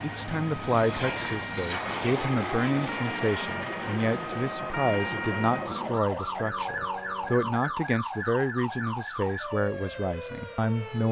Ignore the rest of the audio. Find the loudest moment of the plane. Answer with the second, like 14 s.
2 s.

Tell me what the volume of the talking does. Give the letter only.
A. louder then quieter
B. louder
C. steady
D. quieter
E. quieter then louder
C.